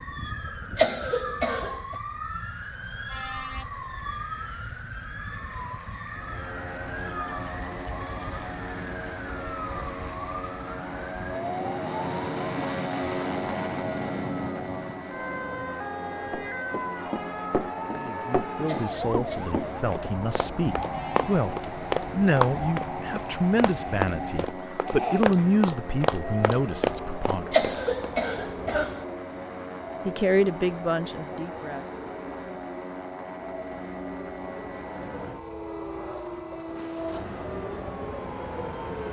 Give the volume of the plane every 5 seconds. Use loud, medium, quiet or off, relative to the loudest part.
off, medium, loud, medium, medium, medium, medium, medium.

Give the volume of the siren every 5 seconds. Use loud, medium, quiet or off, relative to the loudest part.
loud, loud, loud, loud, loud, loud, medium, loud.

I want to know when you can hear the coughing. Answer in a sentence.
The coughing can be heard from 0.8 to 1.9 s, from 18.6 to 19.6 s and from 27.5 to 29.0 s.